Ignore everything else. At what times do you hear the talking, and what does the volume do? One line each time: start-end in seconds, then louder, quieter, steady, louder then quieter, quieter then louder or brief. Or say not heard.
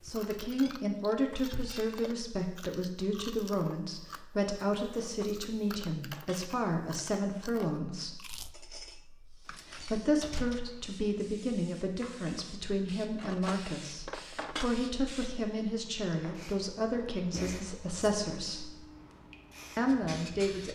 0.1-18.8 steady
19.8-20.6 brief.